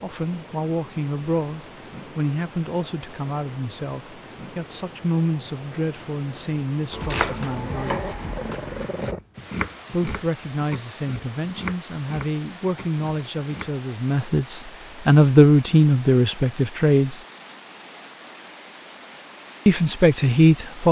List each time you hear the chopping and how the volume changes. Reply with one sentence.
The chopping can be heard from 6.9 to 13.8 s, getting quieter.